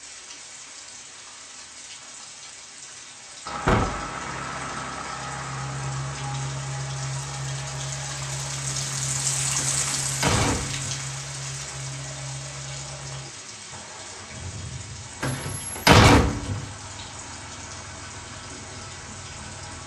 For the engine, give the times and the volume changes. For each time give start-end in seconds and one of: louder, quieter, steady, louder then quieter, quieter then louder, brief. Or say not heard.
3.5-19.8 quieter.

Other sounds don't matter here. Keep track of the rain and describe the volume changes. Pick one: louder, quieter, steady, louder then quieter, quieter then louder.
louder then quieter.